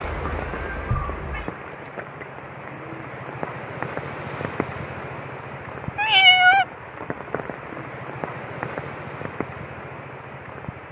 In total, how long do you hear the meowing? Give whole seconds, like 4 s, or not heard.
2 s.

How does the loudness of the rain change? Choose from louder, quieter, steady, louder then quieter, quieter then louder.
steady.